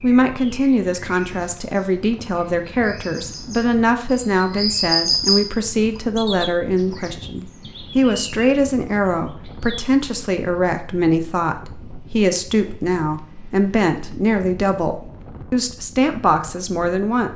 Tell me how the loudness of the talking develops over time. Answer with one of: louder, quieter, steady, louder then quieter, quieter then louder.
steady.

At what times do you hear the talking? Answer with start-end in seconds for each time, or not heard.
0.0-17.3.